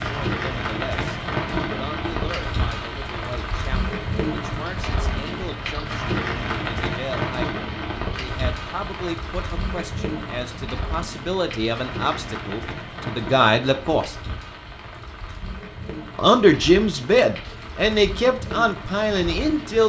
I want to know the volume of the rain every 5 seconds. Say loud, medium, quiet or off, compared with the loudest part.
loud, loud, medium, medium.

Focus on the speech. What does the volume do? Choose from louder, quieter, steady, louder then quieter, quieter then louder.
louder.